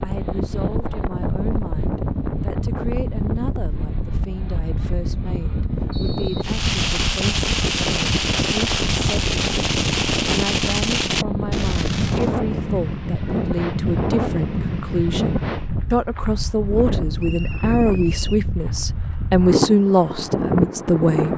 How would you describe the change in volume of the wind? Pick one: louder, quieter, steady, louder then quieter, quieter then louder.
steady.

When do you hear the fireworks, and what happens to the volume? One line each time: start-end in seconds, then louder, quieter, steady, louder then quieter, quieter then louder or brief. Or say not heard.
6.4-12.3 steady.